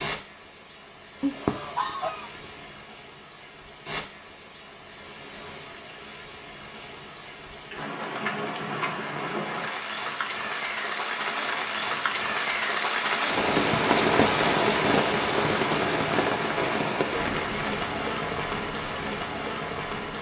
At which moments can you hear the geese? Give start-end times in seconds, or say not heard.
1.2-2.6.